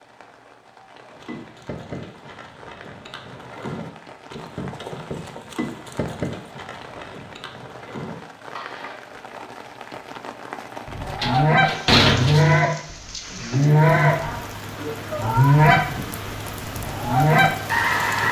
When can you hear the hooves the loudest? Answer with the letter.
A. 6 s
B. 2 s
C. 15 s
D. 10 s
A.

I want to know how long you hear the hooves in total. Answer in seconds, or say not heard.
8 s.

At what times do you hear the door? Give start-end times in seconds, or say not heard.
11.2-12.6.